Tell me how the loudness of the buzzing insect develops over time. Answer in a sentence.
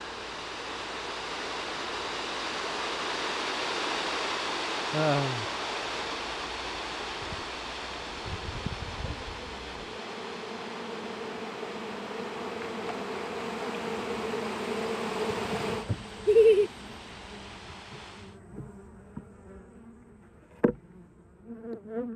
The volume of the buzzing insect goes up, then down.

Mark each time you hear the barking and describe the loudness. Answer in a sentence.
You can't hear the barking here.